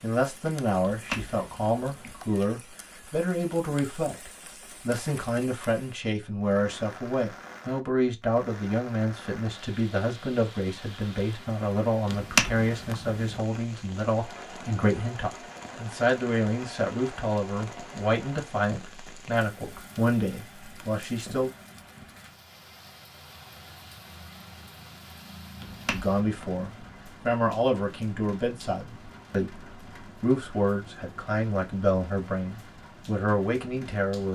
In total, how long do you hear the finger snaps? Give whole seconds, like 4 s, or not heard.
4 s.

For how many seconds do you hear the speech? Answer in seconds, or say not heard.
30 s.